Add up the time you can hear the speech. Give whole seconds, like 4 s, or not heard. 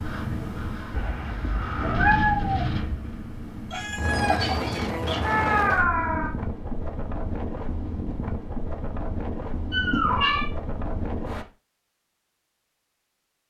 not heard.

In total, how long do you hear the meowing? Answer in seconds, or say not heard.
4 s.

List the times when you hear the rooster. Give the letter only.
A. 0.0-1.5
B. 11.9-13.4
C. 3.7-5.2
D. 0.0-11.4
C.